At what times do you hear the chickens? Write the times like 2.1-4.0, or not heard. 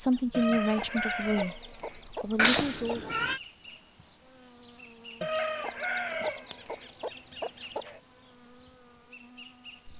0.3-3.0, 5.2-8.0.